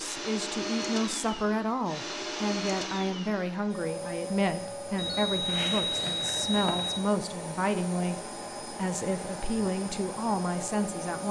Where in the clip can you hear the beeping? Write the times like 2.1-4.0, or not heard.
5.0-7.0.